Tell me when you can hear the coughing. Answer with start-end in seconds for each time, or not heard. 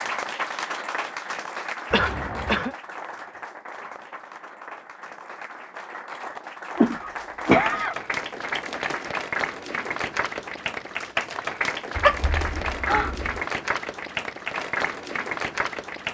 1.9-2.7, 6.8-8.0, 11.9-13.4.